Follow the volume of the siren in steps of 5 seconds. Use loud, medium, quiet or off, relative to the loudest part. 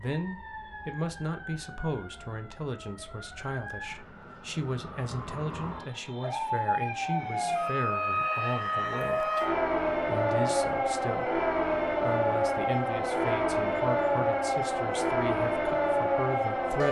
quiet, loud, loud, loud.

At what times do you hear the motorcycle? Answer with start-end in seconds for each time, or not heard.
not heard.